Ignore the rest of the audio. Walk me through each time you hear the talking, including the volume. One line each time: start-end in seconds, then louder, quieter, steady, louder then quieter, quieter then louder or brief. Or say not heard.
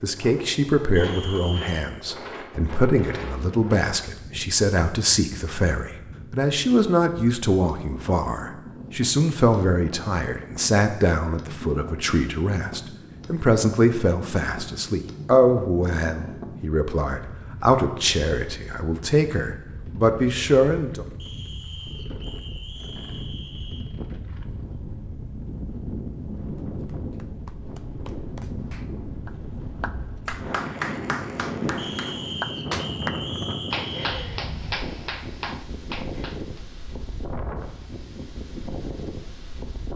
0.0-21.1 steady.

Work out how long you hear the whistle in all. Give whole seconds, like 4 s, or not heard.
6 s.